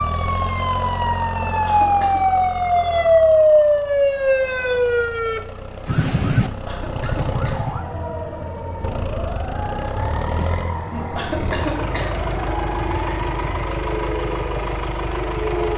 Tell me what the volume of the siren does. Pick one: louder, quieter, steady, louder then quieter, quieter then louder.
quieter.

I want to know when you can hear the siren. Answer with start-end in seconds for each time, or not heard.
0.0-15.7.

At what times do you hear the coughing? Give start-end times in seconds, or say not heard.
1.4-2.2, 6.5-7.7, 10.9-12.3.